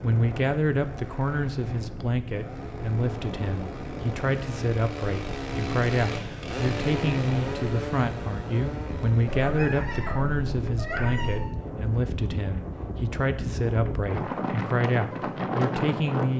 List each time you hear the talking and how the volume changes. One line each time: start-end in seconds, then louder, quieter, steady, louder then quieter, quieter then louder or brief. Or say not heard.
0.0-16.3 steady.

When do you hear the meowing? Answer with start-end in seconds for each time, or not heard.
9.2-11.6.